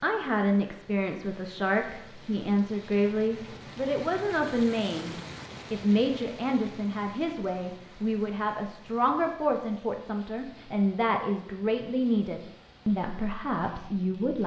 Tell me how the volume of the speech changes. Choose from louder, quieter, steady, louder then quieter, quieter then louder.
steady.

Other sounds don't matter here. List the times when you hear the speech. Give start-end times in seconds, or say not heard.
0.0-14.4.